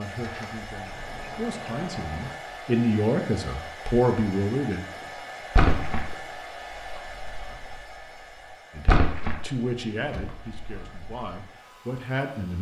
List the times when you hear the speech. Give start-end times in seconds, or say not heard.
0.0-4.8, 8.8-12.5.